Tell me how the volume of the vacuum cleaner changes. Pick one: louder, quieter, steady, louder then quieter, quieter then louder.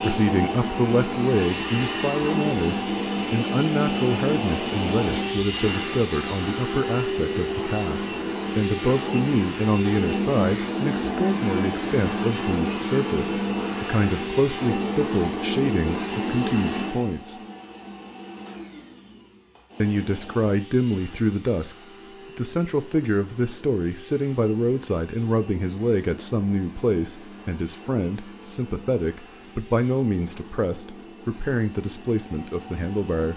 quieter.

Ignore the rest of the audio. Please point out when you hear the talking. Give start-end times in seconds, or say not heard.
0.0-17.4, 19.8-21.8, 22.4-33.3.